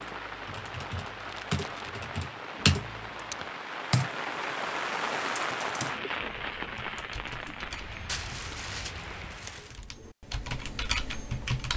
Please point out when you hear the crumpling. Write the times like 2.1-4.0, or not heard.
1.2-1.9, 8.1-9.8.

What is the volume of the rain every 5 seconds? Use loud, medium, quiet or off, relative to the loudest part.
loud, loud, off.